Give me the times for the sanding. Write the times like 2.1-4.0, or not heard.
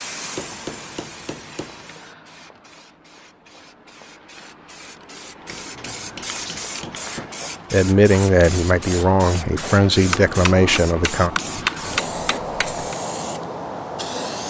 5.8-6.7.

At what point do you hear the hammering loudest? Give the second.
12 s.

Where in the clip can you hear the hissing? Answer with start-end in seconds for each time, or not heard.
0.0-14.4.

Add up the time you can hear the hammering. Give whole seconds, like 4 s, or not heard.
6 s.